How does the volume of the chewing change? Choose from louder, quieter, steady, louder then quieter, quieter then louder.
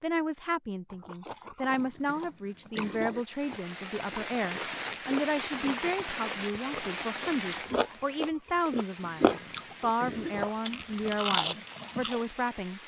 louder.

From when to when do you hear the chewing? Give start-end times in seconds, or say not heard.
0.9-12.2.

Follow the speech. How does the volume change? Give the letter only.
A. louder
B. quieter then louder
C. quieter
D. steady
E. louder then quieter
D.